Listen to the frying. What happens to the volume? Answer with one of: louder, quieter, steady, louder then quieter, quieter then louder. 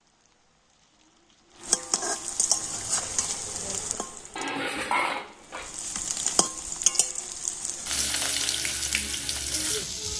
quieter then louder.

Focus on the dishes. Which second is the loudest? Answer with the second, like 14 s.
5 s.